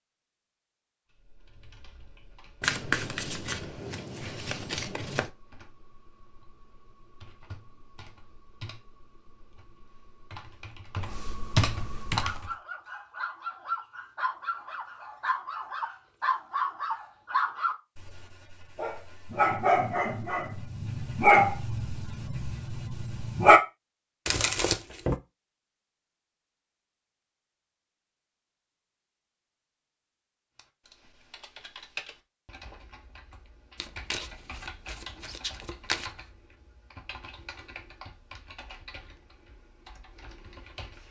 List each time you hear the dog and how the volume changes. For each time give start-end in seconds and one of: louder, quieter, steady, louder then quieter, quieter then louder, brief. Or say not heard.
12.1-23.6 louder.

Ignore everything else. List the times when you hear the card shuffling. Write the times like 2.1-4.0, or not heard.
2.6-5.3, 24.2-25.2, 33.8-36.1.